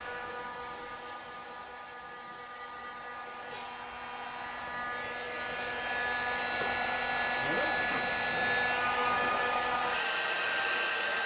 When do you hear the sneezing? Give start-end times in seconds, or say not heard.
2.9-3.8, 7.4-8.1.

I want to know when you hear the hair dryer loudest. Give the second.
9 s.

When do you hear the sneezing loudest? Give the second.
8 s.